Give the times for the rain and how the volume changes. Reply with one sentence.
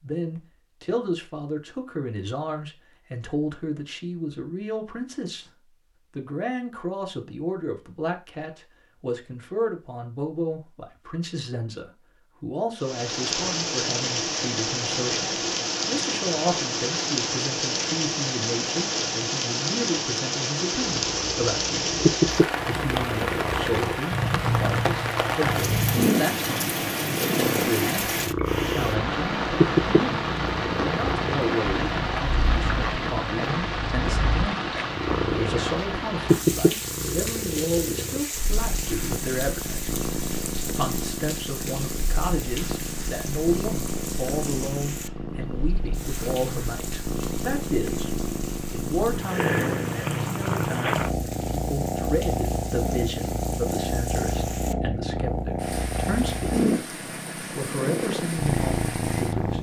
You can hear the rain from 12.8 to 59.5 s, getting quieter.